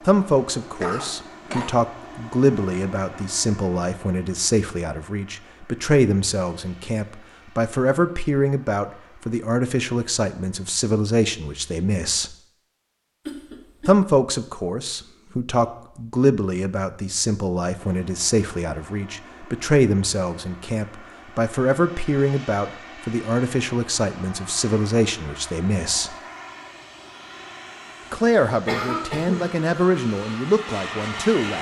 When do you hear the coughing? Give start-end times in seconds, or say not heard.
0.8-1.8, 13.2-13.9, 28.6-29.5.